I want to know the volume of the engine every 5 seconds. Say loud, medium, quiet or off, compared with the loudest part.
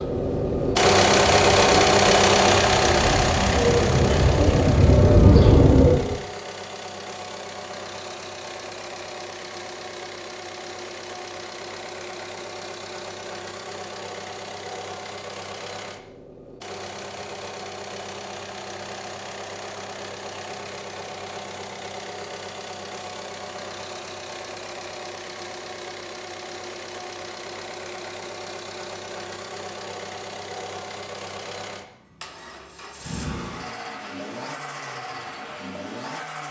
loud, quiet, quiet, quiet, quiet, quiet, quiet, quiet.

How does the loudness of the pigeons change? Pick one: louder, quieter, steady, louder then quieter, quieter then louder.
louder.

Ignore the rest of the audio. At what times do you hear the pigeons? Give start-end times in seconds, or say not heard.
0.0-6.2.